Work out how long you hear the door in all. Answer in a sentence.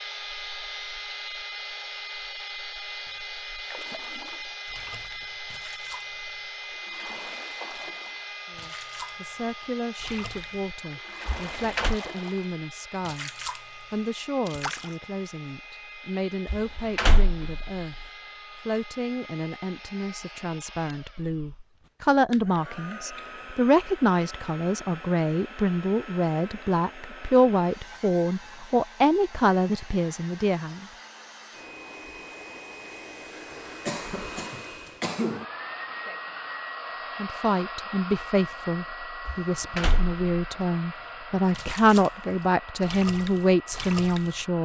You can hear the door for 3 seconds altogether.